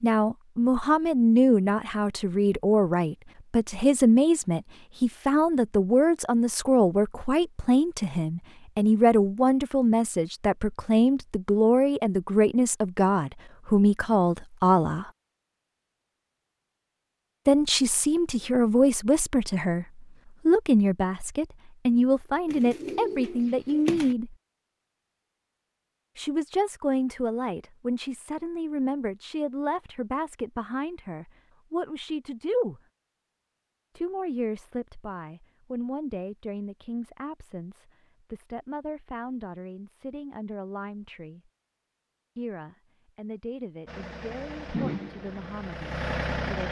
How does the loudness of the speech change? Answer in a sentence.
The loudness of the speech goes down.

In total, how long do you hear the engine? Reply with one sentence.
You can hear the engine for 3 seconds altogether.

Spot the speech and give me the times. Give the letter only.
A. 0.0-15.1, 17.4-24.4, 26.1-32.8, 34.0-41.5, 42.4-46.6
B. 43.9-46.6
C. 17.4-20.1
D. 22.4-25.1
A.